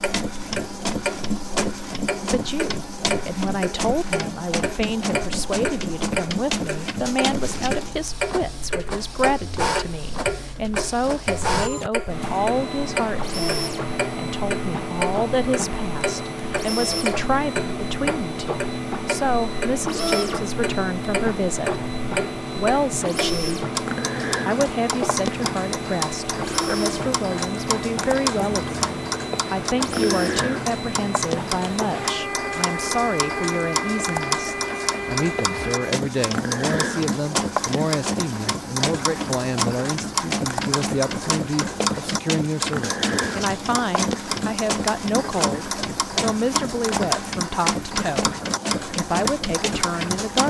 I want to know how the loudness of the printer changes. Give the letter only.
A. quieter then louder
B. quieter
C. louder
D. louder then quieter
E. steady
E.